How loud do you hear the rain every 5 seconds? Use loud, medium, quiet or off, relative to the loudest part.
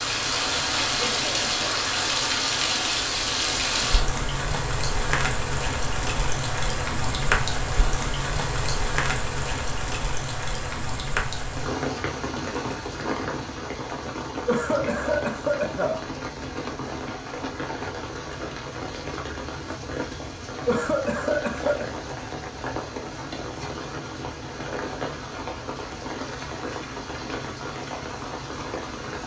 loud, loud, medium, medium, medium, medium.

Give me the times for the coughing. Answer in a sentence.
You can hear the coughing from 1.0 to 1.6 s, from 14.4 to 16.0 s and from 20.6 to 21.9 s.